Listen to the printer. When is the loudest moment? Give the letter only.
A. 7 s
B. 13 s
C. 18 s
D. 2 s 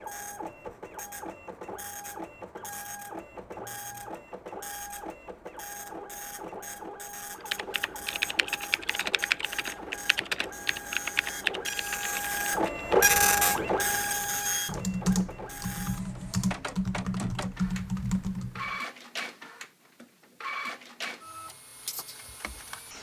B.